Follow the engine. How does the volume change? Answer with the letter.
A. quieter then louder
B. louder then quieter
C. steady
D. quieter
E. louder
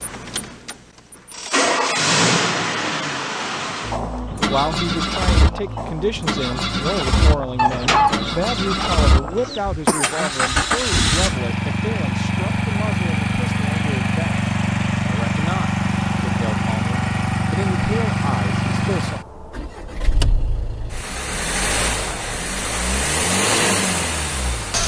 C.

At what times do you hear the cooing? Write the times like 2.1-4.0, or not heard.
7.5-9.6.